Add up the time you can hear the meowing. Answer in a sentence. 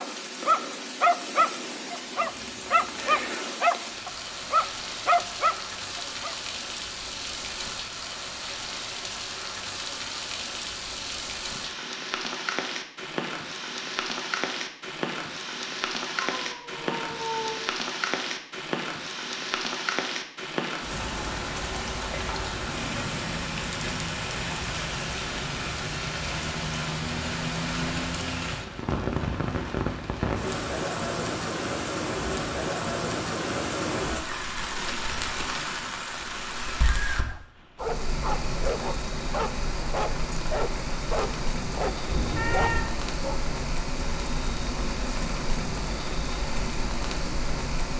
The meowing can be heard for 3 seconds in total.